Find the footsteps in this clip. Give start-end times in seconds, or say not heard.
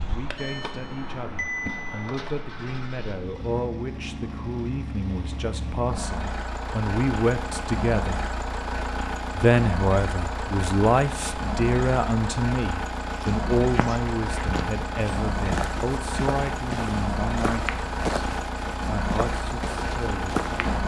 13.1-20.8.